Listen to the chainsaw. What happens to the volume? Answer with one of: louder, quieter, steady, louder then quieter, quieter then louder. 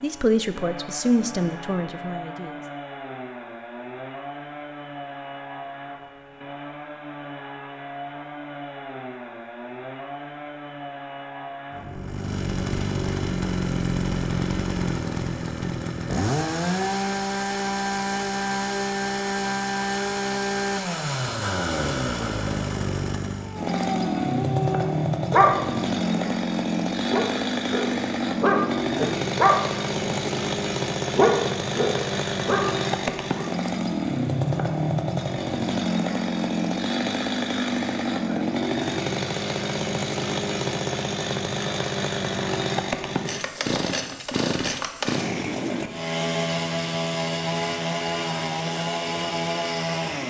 louder.